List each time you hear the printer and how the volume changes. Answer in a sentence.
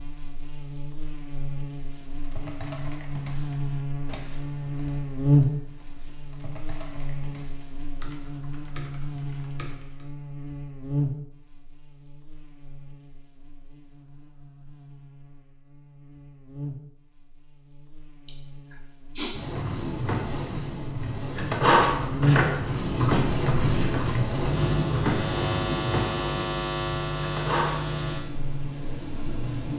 You can hear the printer from 19.3 to 29.7 s, getting louder then quieter.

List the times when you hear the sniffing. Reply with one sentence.
You can hear the sniffing from 18.2 to 19.4 s.